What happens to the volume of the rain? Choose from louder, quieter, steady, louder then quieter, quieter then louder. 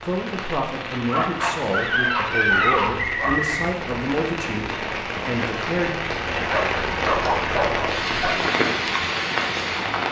louder.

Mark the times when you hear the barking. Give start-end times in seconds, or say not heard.
1.1-3.4, 6.5-8.4.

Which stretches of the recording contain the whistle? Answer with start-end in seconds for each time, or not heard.
2.6-3.7.